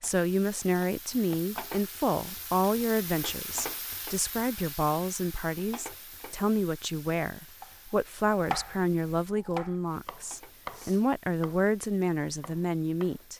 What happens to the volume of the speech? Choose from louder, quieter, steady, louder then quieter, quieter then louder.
steady.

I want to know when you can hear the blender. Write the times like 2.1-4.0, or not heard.
not heard.